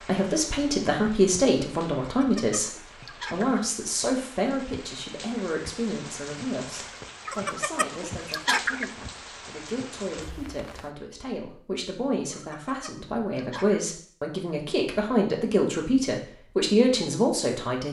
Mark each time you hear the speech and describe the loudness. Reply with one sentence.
You can hear the speech from 0.1 to 17.8 s, getting quieter then louder.